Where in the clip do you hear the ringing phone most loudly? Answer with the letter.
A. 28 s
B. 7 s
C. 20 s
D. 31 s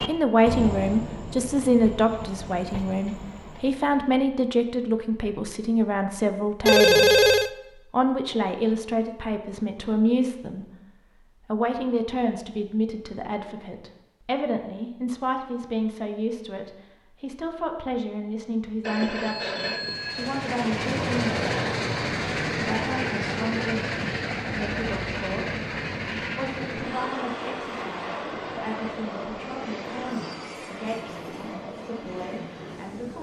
B.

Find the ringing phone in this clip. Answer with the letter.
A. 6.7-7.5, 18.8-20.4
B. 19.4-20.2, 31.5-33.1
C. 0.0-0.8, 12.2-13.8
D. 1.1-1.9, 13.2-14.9
A.